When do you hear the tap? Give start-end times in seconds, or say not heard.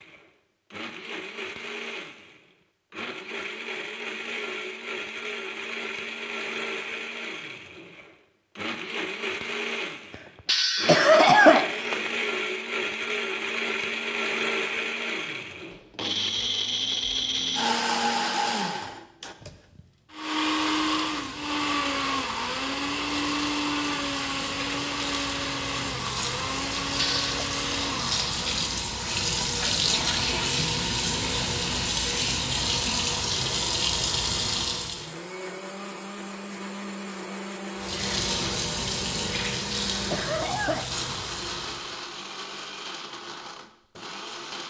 20.2-35.1, 37.8-42.0.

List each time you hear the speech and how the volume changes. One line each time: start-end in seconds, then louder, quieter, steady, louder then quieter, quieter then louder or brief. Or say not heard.
not heard.